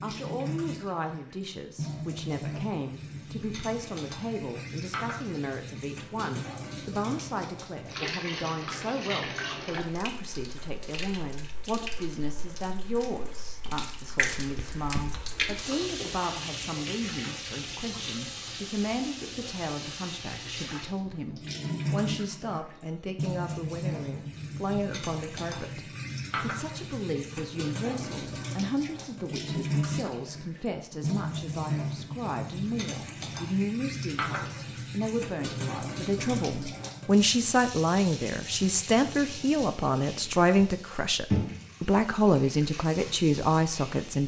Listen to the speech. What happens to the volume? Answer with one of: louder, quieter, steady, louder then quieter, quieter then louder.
louder.